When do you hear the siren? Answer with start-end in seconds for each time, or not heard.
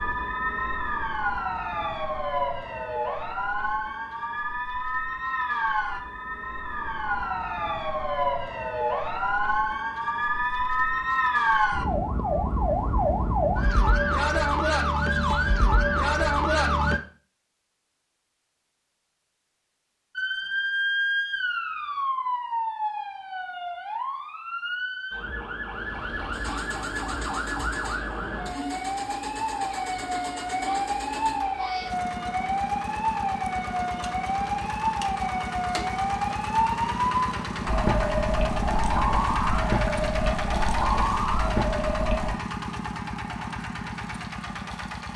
0.0-17.0, 20.1-42.4.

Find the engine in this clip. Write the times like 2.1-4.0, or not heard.
25.7-45.1.